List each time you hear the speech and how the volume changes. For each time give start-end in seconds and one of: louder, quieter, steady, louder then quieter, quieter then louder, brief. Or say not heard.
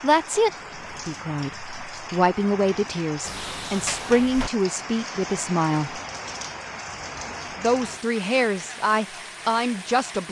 0.0-6.0 steady
7.5-10.2 brief.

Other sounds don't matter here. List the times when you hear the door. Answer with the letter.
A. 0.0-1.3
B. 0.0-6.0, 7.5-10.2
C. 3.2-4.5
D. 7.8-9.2
C.